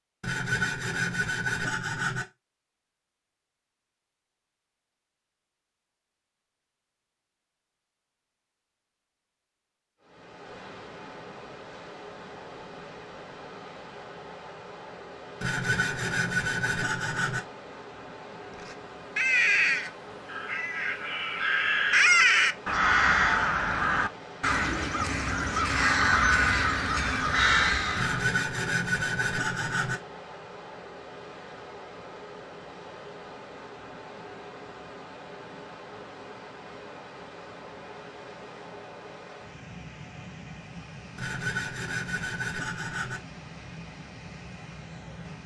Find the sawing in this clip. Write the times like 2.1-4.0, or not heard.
0.2-2.2, 15.4-17.4, 27.9-30.0, 41.1-43.2.